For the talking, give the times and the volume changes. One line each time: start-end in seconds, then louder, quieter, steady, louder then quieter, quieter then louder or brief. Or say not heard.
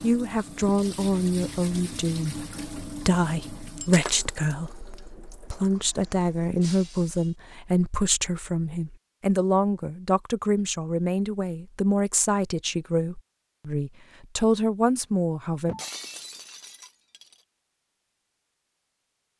0.0-15.8 steady.